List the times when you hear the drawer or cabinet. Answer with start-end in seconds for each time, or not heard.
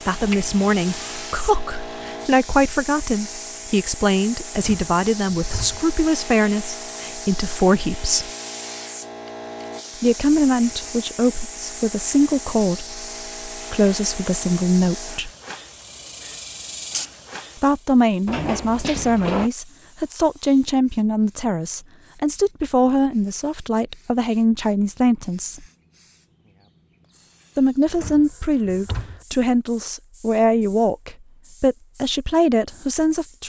4.5-5.8, 18.2-19.5, 27.9-29.2.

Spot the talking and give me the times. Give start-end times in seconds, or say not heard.
0.1-8.3, 10.0-15.3, 17.6-25.6, 27.6-33.4.